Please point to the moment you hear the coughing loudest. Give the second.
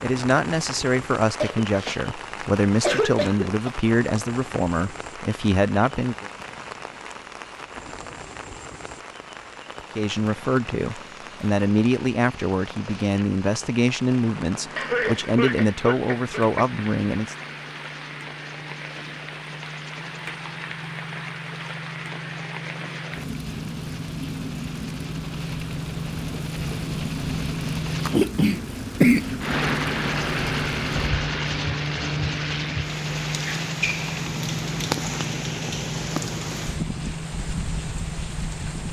29 s.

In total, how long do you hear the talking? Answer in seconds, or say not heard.
14 s.